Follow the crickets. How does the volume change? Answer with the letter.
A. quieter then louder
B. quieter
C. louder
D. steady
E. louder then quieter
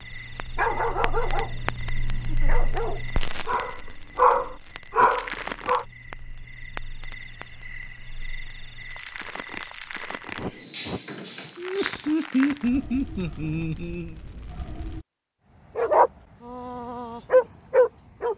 A.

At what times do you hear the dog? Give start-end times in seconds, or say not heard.
0.2-1.7, 2.3-5.8, 15.8-18.3.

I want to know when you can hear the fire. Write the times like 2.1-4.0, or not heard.
0.0-15.1.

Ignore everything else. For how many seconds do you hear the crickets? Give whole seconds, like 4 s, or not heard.
12 s.